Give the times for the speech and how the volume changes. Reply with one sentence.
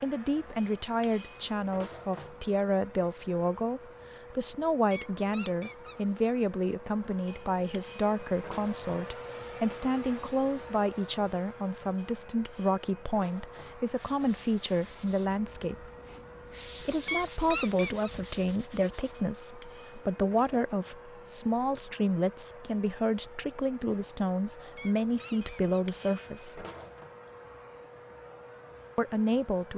You can hear the speech from 0.0 to 15.9 s, at a steady volume; from 16.8 to 26.6 s, at a steady volume; and briefly from 28.9 to 29.7 s.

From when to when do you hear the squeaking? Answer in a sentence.
The squeaking can be heard from 4.9 to 6.2 s, from 17.1 to 18.1 s and from 24.8 to 25.9 s.